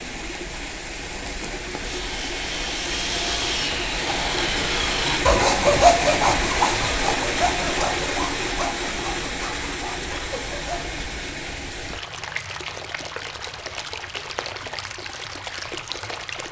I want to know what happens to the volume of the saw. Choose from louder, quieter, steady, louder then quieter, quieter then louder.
louder then quieter.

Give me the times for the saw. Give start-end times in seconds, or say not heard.
1.8-10.9.